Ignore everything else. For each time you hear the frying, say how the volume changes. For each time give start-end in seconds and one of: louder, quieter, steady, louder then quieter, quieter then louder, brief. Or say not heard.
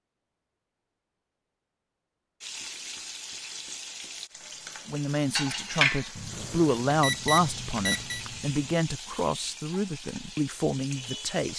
2.4-11.5 louder then quieter.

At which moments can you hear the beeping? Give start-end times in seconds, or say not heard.
6.3-8.2.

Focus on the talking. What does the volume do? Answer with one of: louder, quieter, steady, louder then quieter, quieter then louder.
louder then quieter.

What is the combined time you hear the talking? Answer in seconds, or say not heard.
7 s.